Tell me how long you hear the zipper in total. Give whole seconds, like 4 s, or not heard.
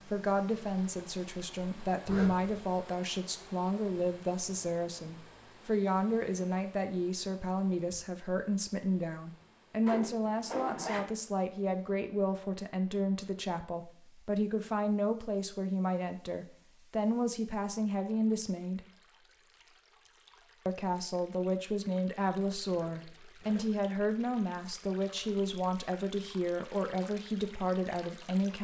3 s.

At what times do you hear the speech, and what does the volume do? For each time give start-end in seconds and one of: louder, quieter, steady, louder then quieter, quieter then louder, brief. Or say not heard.
0.1-18.9 steady
20.6-28.5 steady.